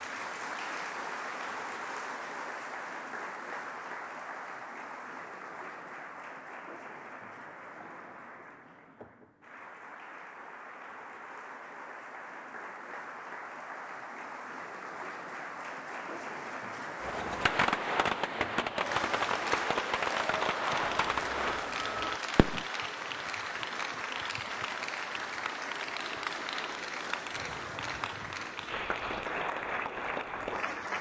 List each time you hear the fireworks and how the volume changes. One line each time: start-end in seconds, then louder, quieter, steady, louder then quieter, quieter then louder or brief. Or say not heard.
17.0-22.6 quieter.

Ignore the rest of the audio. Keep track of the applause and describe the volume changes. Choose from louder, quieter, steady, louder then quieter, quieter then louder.
quieter then louder.